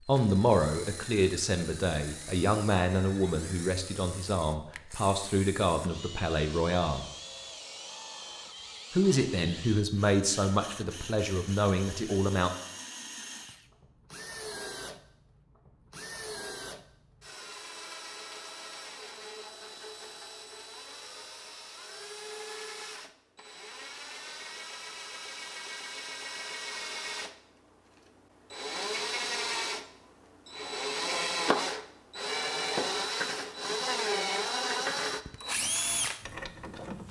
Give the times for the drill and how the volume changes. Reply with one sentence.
The drill can be heard from 0.0 to 37.0 s, getting louder.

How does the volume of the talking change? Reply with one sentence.
The volume of the talking stays about the same.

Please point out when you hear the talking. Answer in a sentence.
The talking can be heard from 0.1 to 7.0 s and from 8.9 to 12.5 s.